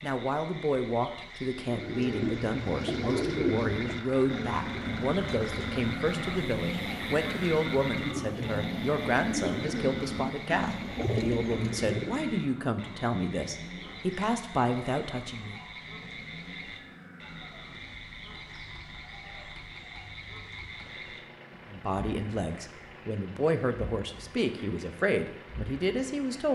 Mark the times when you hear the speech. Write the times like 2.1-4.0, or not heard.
0.0-15.6, 21.7-26.5.